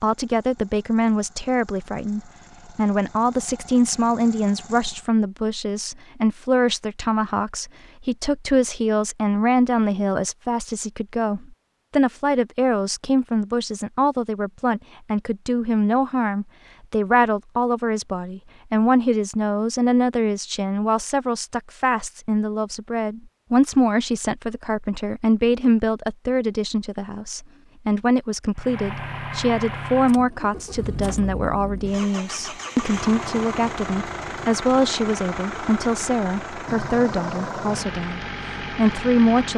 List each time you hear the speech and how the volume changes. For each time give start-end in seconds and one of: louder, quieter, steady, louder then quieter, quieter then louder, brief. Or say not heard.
0.0-39.5 steady.